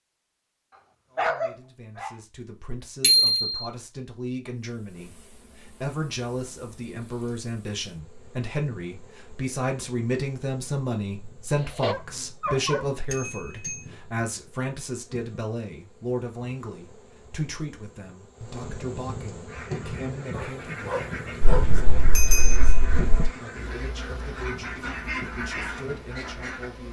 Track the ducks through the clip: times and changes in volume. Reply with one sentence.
The ducks can be heard from 19.4 to 26.7 s, getting louder.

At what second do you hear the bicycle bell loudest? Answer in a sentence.
The volume of the bicycle bell peaks at 3 seconds.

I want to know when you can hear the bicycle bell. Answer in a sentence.
The bicycle bell can be heard from 3.0 to 3.6 s, from 13.1 to 13.8 s and from 21.4 to 23.3 s.